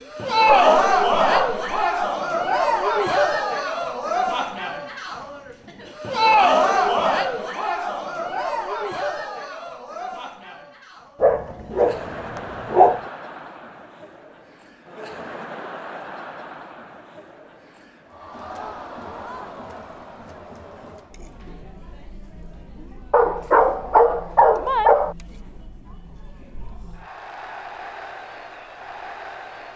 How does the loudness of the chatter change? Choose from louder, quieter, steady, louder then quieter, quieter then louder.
quieter.